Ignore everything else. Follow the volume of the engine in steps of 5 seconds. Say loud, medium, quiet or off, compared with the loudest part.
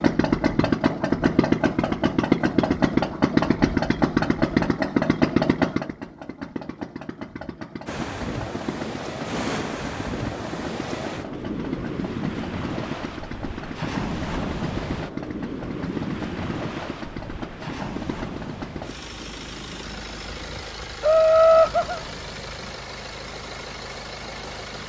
loud, medium, quiet, quiet, quiet.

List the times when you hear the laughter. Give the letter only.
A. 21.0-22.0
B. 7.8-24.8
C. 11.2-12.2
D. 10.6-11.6
A.